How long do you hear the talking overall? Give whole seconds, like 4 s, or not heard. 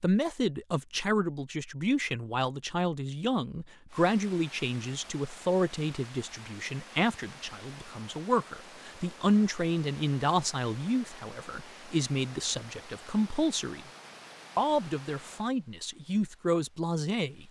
17 s.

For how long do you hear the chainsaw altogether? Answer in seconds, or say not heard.
not heard.